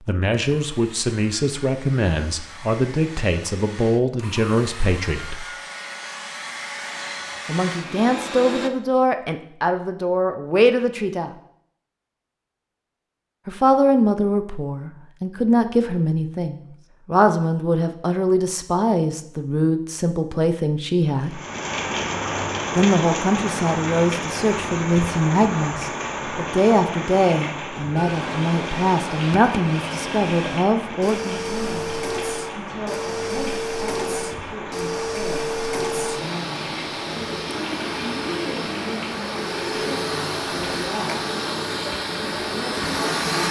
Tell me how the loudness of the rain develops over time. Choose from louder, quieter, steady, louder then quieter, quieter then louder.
quieter.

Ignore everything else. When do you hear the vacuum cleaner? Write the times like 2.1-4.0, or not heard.
0.4-8.7, 27.9-43.4.